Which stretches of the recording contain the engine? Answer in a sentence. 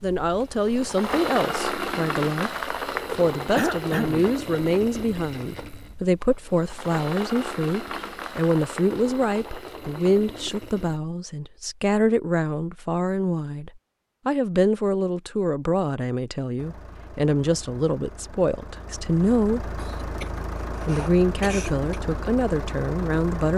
The engine can be heard from 0.0 to 11.0 s and from 16.6 to 23.5 s.